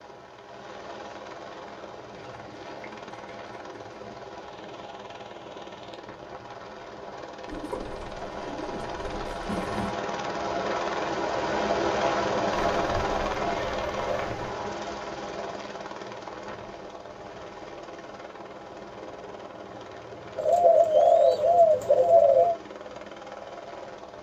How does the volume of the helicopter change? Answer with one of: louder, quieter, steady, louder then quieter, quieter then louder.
louder then quieter.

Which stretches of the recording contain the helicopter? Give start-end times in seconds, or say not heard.
0.0-24.1.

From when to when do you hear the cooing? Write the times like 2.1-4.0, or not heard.
2.1-4.2, 7.5-9.9, 12.7-14.5, 20.4-22.6.